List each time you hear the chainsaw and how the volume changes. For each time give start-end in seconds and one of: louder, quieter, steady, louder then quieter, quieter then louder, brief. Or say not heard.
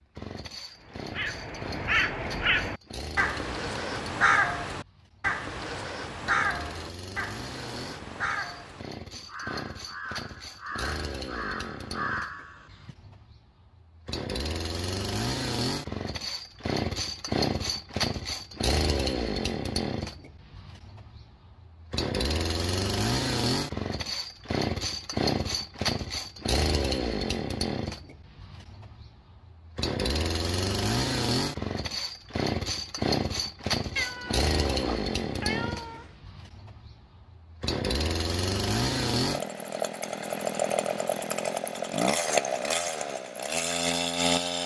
0.0-44.6 louder.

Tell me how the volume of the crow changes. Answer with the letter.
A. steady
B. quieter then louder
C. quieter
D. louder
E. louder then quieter
C.